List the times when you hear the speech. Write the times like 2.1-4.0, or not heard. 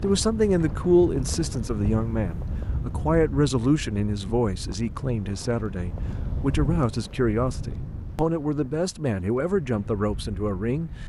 0.0-10.9.